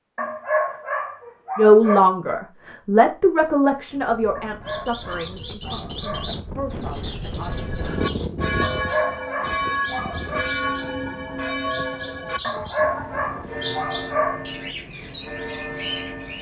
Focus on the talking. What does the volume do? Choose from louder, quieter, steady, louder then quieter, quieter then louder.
quieter.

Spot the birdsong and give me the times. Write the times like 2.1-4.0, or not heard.
4.7-16.3.